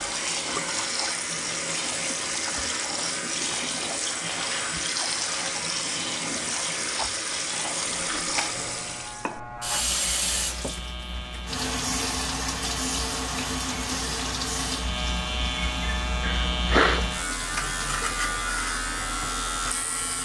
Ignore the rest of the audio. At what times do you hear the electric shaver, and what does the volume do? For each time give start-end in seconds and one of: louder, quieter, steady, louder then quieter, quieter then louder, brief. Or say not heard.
0.0-20.2 louder.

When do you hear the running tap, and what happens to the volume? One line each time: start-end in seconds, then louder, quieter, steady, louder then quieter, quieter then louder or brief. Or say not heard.
0.0-20.2 quieter.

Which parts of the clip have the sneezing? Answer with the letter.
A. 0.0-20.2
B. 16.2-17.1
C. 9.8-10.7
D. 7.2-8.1
B.